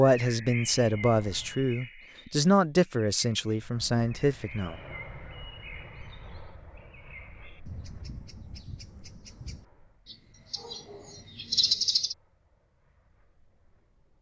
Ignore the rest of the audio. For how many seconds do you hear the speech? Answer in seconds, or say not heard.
5 s.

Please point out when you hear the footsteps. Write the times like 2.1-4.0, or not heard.
not heard.